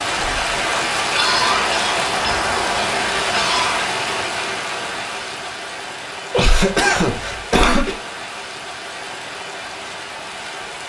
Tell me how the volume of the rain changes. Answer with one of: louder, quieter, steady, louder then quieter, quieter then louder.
quieter.